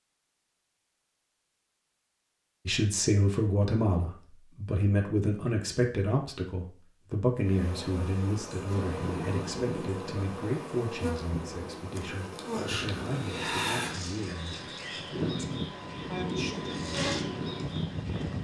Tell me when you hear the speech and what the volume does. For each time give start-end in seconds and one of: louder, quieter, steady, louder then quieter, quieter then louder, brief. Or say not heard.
2.6-16.7 quieter.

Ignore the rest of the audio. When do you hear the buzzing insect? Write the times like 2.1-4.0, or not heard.
7.4-18.4.